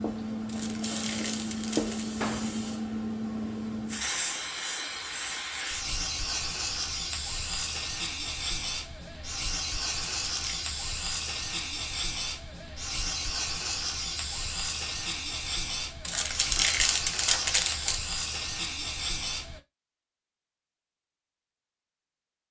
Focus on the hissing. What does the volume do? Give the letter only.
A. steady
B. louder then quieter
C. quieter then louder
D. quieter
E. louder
A.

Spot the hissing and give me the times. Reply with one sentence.
The hissing can be heard from 0.0 to 19.6 s.